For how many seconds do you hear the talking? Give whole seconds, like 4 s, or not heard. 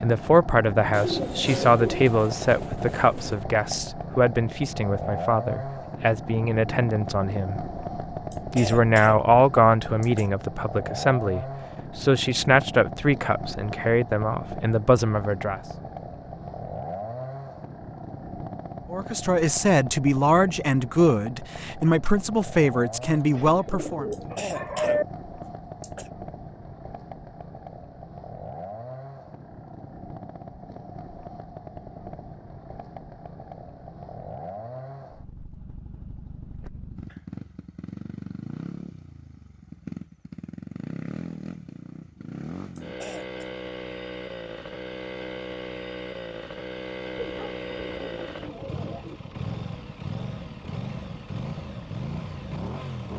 20 s.